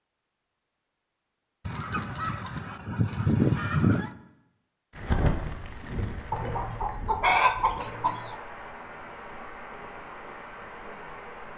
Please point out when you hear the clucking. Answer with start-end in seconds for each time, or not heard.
1.6-4.1, 6.3-8.3.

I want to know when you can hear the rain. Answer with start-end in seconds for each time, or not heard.
4.9-11.5.